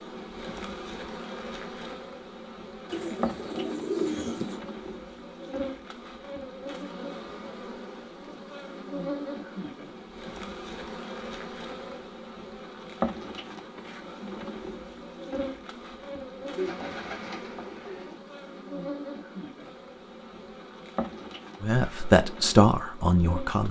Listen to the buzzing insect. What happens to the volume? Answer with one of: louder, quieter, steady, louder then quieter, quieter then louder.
steady.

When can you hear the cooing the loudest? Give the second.
4 s.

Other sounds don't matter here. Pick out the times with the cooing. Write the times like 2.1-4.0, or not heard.
2.9-4.6, 16.6-18.1.